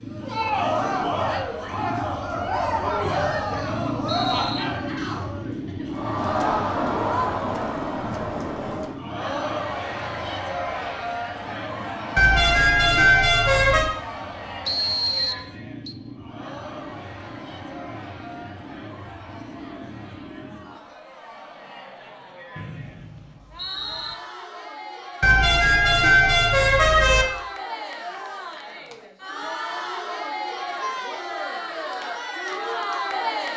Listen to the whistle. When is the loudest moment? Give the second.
15 s.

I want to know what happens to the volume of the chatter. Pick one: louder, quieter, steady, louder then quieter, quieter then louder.
quieter then louder.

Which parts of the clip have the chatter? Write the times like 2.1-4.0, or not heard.
0.1-33.5.